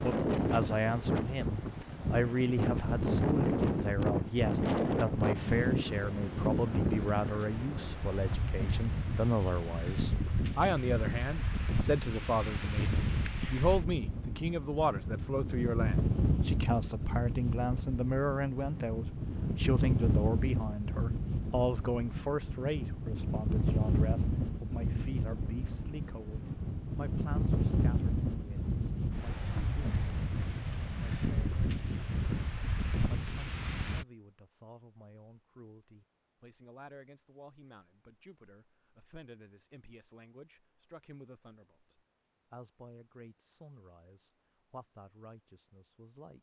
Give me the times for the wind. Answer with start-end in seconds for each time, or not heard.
0.0-34.0.